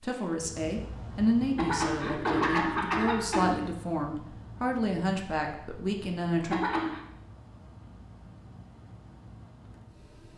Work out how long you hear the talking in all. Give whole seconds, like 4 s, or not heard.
7 s.